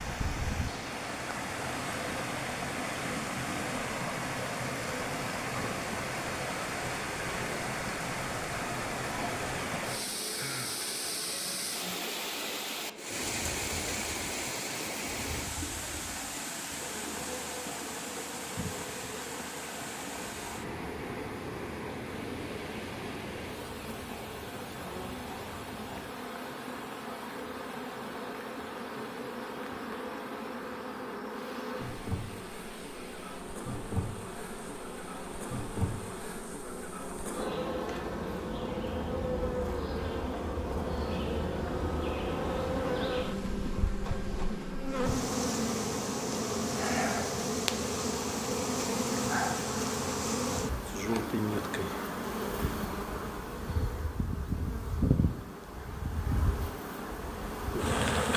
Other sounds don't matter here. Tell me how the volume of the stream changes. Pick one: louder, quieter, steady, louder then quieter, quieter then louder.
quieter.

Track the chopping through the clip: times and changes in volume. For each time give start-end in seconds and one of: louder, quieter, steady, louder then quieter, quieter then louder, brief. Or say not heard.
not heard.